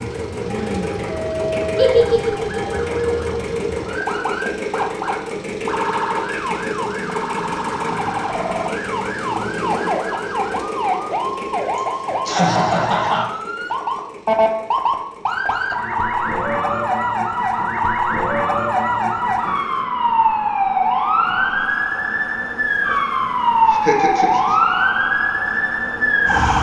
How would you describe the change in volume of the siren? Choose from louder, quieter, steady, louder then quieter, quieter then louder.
louder.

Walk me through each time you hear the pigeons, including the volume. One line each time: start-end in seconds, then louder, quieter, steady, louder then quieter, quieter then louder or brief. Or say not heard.
not heard.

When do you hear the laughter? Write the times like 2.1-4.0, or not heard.
1.8-2.6, 11.8-13.2, 23.7-24.6.